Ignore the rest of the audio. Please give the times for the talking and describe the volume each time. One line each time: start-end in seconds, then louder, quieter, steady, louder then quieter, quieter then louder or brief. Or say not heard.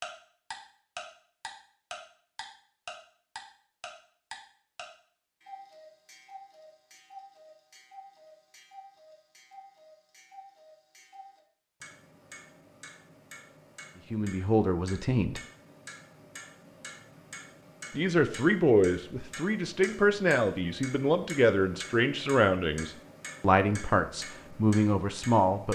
14.1-15.4 brief
17.9-25.6 steady.